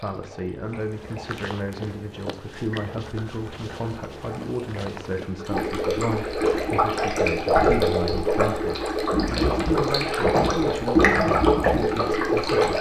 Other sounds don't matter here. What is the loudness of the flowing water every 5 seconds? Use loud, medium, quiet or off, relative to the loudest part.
quiet, loud, loud.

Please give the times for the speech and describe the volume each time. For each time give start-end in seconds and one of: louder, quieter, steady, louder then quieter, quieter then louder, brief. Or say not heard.
0.0-12.7 steady.